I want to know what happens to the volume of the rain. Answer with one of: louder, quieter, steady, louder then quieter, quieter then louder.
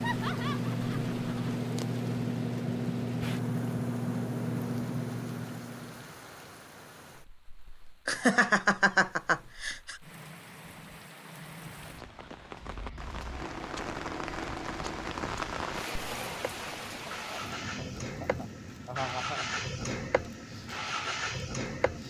louder then quieter.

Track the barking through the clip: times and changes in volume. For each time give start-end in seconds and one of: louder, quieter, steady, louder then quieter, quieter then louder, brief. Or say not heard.
not heard.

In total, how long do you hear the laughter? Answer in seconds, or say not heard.
6 s.